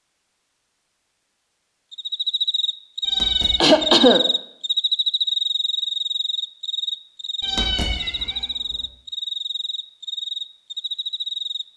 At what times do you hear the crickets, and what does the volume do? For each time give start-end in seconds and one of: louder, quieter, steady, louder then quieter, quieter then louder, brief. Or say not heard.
1.9-11.7 quieter.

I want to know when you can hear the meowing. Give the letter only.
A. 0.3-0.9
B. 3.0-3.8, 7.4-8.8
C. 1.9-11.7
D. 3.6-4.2
B.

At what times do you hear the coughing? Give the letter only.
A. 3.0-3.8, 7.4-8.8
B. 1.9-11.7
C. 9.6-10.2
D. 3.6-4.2
D.